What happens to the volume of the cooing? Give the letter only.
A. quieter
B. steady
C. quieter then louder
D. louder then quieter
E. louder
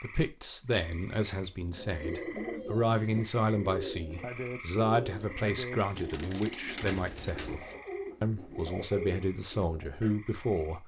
B.